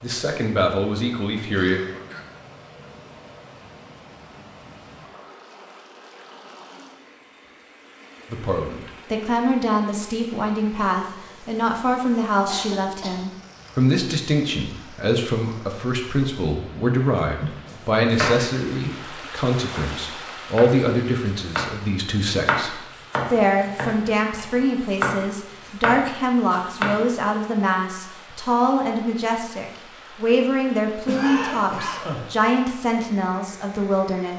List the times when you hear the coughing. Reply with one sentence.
You can hear the coughing from 1.5 to 2.2 s, from 12.4 to 13.3 s and from 31.1 to 32.3 s.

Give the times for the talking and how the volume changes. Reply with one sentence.
You can hear the talking briefly from 0.0 to 1.8 s; and from 8.3 to 34.3 s, at a steady volume.